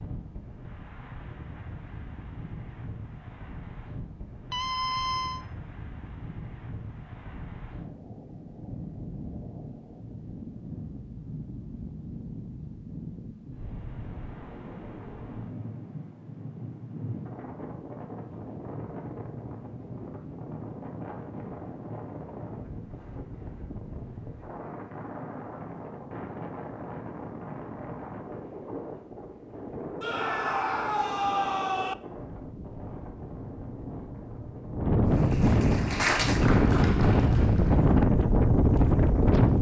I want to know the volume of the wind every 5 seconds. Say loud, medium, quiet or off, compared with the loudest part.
quiet, quiet, quiet, quiet, quiet, quiet, quiet, loud.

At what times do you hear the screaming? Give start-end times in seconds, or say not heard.
4.5-5.5, 30.0-31.9.